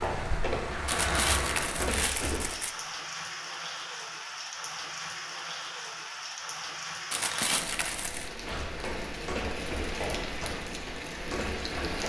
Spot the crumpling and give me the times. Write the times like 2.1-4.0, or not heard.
0.8-2.8, 7.1-8.3.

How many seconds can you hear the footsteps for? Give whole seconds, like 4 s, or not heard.
6 s.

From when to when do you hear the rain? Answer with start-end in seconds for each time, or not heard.
0.0-12.0.